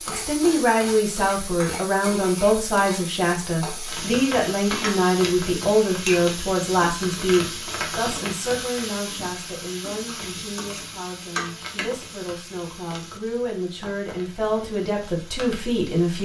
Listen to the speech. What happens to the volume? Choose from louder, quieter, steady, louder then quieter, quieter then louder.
quieter then louder.